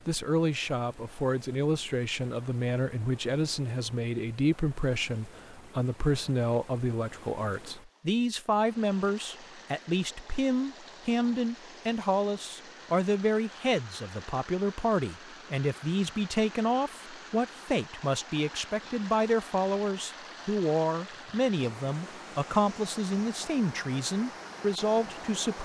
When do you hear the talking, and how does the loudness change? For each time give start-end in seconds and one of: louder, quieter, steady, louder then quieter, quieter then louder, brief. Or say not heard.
0.1-25.5 steady.